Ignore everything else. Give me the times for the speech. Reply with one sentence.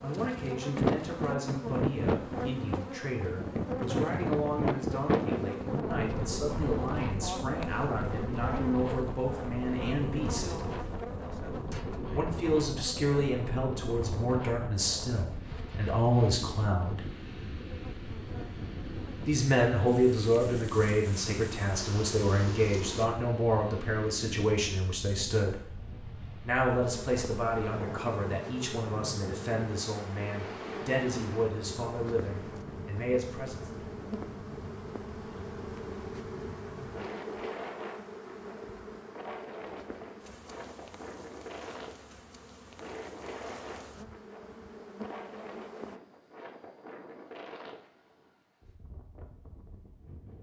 You can hear the speech from 0.0 to 10.6 s, from 12.1 to 17.0 s, from 19.2 to 25.6 s and from 26.4 to 33.7 s.